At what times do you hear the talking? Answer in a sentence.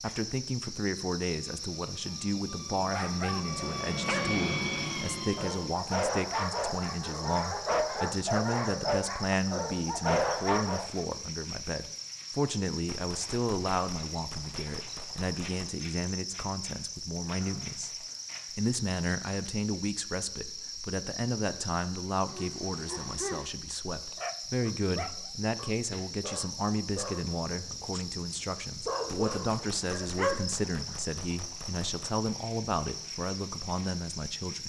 The talking can be heard from 0.0 to 34.6 s.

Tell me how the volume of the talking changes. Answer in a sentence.
The volume of the talking stays about the same.